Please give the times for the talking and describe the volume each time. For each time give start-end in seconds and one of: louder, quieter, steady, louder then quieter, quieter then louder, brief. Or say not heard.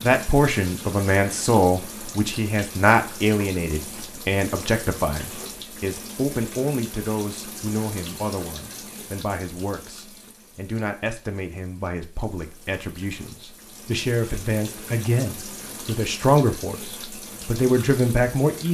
0.0-18.6 quieter then louder.